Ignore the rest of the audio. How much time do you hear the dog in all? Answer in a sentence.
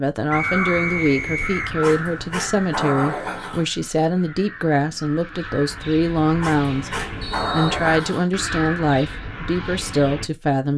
The dog can be heard for 4 seconds in total.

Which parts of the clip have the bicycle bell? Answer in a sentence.
You can't hear the bicycle bell here.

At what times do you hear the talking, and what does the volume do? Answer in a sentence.
You can hear the talking from 0.0 to 10.7 s, at a steady volume.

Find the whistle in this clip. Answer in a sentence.
The whistle can be heard from 0.3 to 1.8 s and from 7.2 to 8.3 s.